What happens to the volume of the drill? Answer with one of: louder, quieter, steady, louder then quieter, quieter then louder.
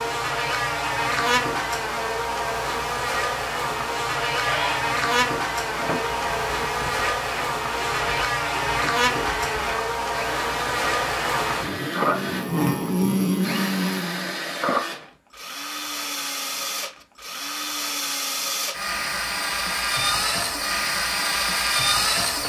louder.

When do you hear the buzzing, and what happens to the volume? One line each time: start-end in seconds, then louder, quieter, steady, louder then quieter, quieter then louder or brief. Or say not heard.
0.0-14.3 steady.